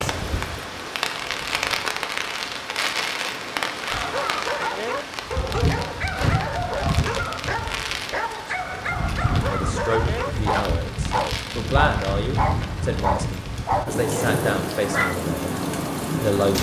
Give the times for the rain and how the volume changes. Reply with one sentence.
The rain can be heard from 0.0 to 16.5 s, at a steady volume.